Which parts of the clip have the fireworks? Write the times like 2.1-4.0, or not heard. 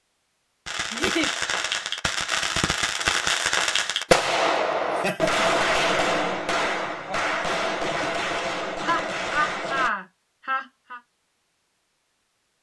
0.7-9.9.